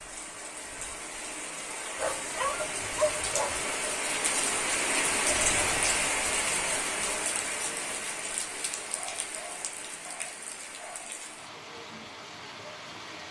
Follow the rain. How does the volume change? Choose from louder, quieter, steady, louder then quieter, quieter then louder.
louder then quieter.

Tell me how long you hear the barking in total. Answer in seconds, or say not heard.
4 s.